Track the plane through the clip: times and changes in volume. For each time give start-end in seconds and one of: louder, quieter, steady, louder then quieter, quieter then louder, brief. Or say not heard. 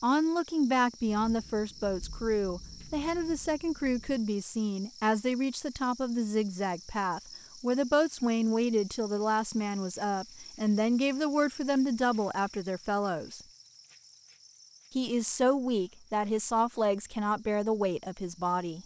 not heard.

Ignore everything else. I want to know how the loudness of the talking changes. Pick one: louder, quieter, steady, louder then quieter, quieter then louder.
steady.